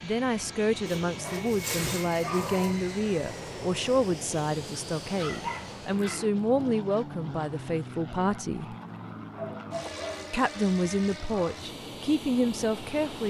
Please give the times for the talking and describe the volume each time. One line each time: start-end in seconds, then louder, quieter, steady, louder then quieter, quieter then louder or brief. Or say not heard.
0.0-8.8 steady
10.3-13.2 brief.